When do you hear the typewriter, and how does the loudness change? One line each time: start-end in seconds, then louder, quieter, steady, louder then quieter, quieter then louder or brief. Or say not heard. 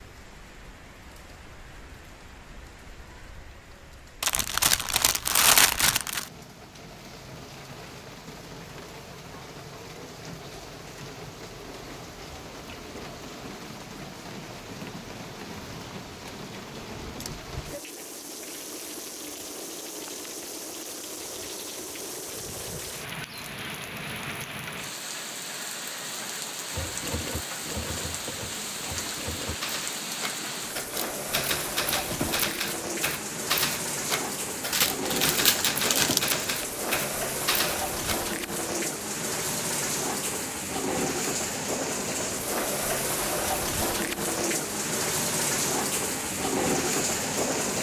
26.7-38.1 louder.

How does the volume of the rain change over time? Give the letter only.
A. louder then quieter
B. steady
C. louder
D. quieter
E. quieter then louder
C.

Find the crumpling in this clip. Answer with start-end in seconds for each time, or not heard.
4.2-6.3, 34.7-36.2.